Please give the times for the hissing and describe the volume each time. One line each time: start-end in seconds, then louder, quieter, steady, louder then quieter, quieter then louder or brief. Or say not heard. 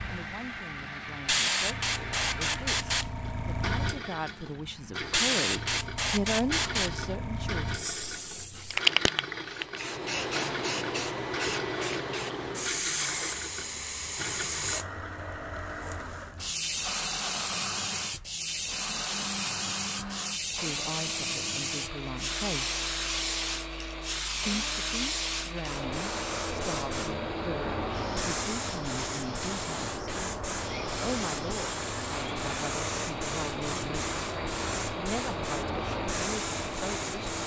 0.0-37.4 steady.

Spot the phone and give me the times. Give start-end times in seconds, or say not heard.
not heard.